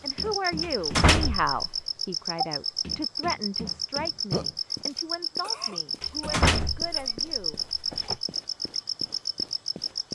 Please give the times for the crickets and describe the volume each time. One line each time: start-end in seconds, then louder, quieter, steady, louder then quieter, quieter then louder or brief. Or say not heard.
0.0-10.1 steady.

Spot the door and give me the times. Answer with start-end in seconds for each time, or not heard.
0.6-1.8, 6.0-8.2.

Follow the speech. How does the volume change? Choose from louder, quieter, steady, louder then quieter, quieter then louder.
quieter.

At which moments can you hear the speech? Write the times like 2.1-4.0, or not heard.
0.0-7.6.